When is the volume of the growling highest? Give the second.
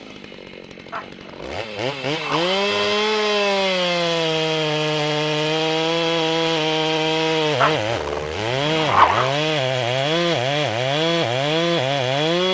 9 s.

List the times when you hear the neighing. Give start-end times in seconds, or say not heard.
not heard.